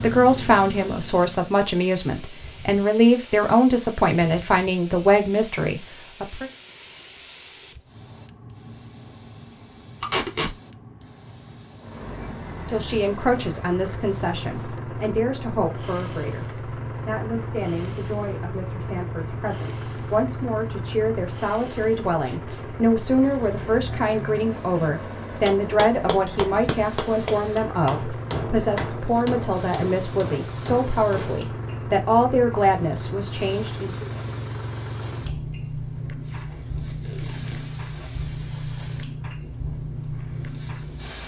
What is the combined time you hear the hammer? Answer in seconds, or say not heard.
6 s.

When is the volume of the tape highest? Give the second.
10 s.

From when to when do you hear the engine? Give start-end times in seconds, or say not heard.
0.0-1.5, 11.8-41.2.